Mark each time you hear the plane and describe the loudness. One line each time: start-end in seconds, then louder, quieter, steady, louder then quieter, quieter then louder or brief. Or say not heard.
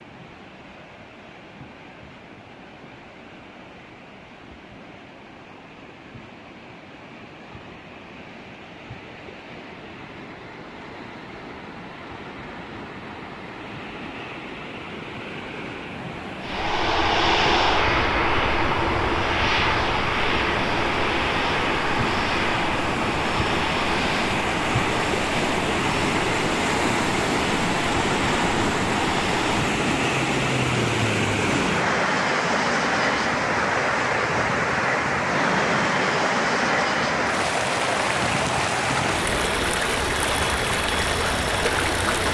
16.4-42.2 quieter.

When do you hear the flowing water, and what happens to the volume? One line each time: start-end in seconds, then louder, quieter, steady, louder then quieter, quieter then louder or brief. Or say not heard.
0.0-42.2 louder.